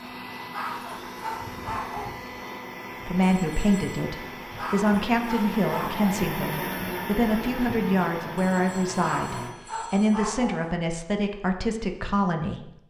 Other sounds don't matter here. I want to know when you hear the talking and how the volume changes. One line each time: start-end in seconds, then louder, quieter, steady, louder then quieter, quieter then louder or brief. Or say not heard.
3.0-12.7 steady.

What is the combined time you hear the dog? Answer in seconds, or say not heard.
5 s.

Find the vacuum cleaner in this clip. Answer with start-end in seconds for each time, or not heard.
0.0-9.6.